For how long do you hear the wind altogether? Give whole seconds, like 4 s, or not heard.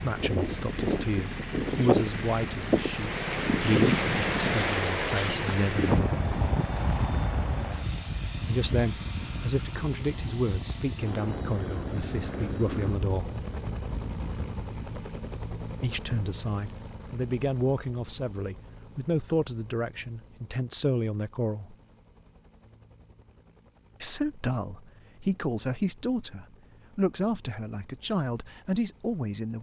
15 s.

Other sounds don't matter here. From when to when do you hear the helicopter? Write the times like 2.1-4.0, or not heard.
0.0-29.5.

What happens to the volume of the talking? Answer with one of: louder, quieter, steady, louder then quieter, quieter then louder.
steady.